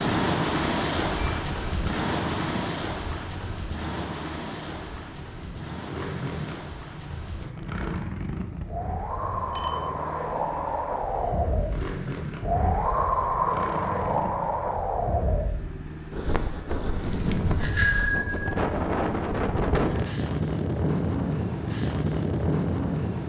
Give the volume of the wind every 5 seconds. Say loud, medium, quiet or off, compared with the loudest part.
loud, medium, loud, loud, loud.